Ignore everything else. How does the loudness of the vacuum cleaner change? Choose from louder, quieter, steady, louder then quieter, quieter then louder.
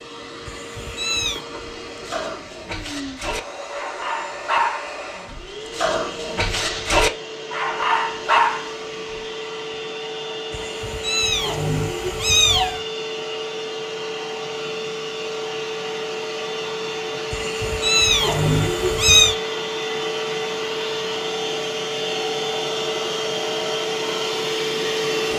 louder.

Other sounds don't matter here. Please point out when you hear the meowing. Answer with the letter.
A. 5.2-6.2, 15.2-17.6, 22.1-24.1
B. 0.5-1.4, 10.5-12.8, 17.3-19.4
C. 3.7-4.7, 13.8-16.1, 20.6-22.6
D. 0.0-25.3
B.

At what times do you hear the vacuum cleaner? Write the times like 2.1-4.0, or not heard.
0.0-25.3.